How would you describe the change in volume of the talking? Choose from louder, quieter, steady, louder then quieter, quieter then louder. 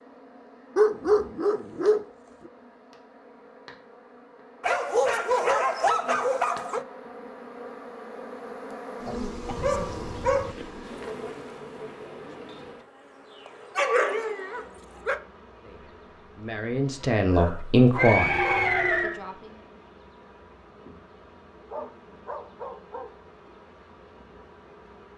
louder then quieter.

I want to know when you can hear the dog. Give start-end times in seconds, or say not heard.
0.8-2.5, 4.6-6.8, 9.4-10.6, 13.4-15.2, 17.2-18.8, 21.7-23.1.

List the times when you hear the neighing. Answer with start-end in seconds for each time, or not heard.
17.9-19.2.